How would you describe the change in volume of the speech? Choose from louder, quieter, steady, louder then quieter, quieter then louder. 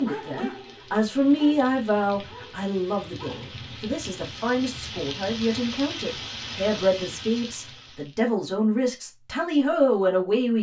quieter then louder.